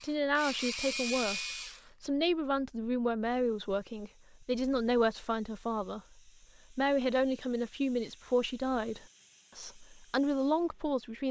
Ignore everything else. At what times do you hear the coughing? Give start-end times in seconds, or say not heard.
not heard.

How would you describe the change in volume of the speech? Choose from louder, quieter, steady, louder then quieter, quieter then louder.
steady.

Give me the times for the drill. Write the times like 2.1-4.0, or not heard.
0.0-1.9.